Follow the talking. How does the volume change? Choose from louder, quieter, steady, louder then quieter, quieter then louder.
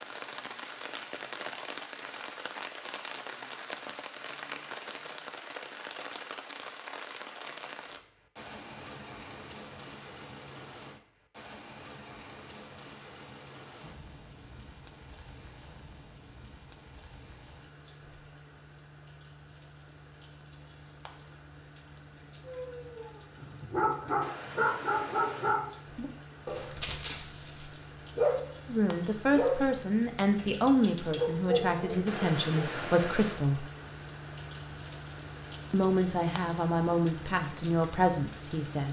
steady.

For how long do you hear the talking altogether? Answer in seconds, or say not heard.
8 s.